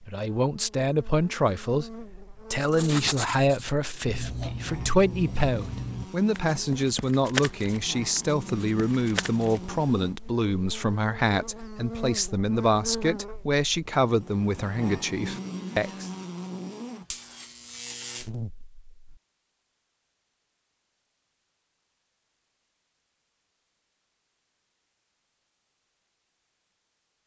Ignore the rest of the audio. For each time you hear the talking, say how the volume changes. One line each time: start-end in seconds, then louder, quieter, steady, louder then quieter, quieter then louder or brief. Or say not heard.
0.0-16.1 steady.